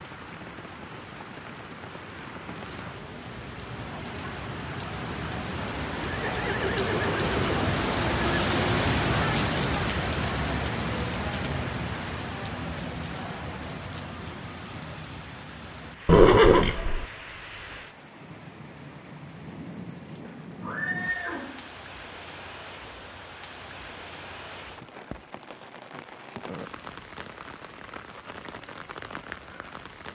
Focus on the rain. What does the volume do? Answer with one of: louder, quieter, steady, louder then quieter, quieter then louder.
louder then quieter.